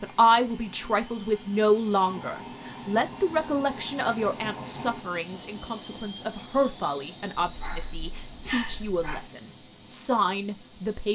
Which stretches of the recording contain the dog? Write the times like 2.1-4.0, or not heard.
7.4-9.2.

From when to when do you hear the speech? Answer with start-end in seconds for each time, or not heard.
0.0-11.1.